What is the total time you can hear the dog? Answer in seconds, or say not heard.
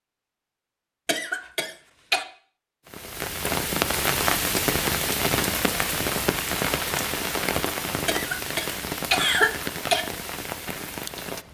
not heard.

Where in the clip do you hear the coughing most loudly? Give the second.
9 s.